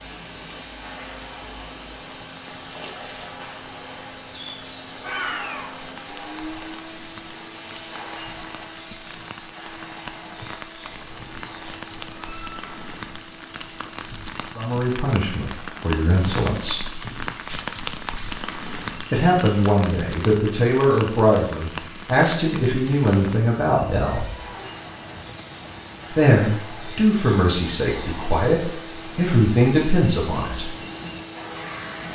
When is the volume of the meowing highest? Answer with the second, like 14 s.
5 s.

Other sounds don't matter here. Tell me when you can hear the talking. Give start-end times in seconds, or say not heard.
14.6-16.9, 19.1-24.2, 26.1-30.8.